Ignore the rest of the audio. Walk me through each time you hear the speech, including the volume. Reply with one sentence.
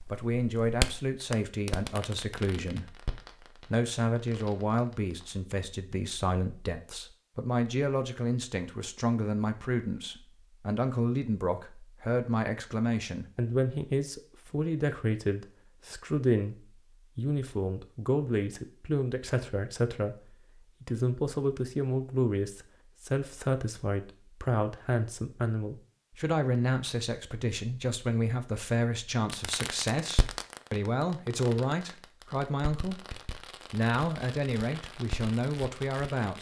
You can hear the speech from 0.0 to 36.3 s, at a steady volume.